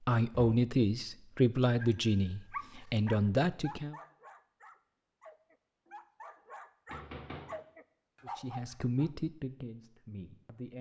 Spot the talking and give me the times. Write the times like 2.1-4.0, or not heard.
0.0-4.0, 8.2-10.7.